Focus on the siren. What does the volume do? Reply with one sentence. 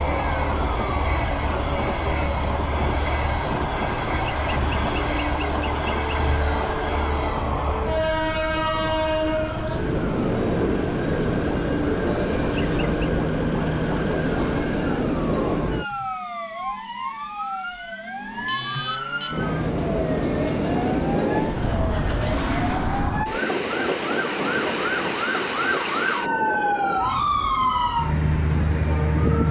The loudness of the siren goes up.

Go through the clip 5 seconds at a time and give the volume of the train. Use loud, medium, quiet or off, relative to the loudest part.
loud, loud, loud, loud, loud, medium.